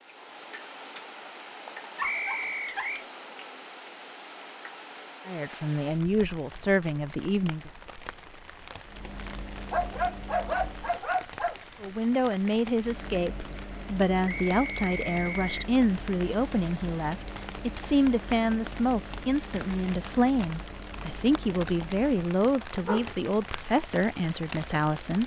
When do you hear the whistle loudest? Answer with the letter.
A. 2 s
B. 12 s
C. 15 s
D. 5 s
A.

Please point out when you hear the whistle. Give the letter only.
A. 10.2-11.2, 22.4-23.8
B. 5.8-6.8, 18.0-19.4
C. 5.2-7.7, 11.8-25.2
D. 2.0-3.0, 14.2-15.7
D.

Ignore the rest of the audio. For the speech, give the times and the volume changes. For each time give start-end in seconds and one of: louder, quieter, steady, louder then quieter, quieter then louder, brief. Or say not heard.
5.2-7.7 brief
11.8-25.2 steady.